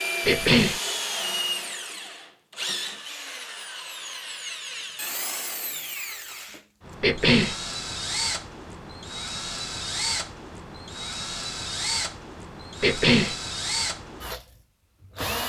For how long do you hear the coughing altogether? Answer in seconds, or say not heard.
2 s.